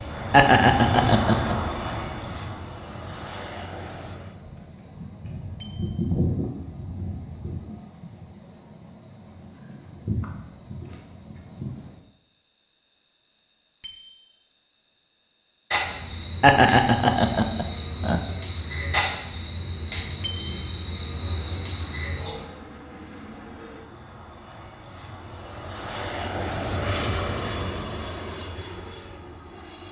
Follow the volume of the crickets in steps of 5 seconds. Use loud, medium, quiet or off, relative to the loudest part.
loud, loud, loud, loud, loud, off.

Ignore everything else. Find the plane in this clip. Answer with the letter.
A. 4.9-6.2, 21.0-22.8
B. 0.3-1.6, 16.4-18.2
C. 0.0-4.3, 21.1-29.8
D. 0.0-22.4
C.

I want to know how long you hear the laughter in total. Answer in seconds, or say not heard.
3 s.